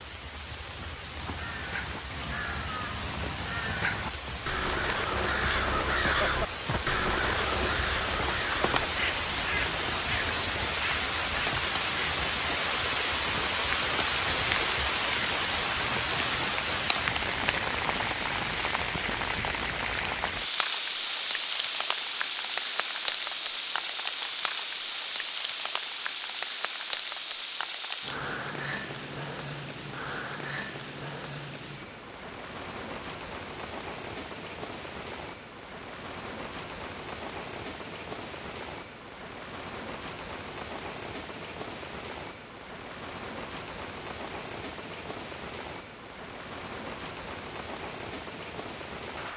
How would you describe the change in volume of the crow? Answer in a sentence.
The volume of the crow goes up, then down.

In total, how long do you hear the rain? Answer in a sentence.
The rain can be heard for 49 seconds in total.